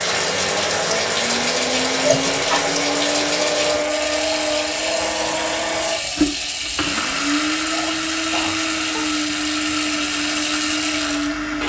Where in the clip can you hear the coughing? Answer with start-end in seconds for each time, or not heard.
2.0-2.8, 7.7-9.1.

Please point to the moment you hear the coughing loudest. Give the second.
2 s.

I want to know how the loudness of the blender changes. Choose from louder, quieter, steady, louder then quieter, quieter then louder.
steady.